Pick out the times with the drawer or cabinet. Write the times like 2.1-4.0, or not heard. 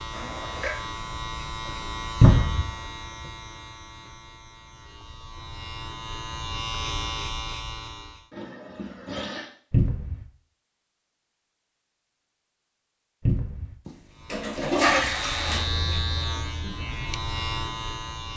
2.2-2.7, 9.7-10.2, 13.2-13.8.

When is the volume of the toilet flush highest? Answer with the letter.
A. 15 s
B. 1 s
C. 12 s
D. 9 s
A.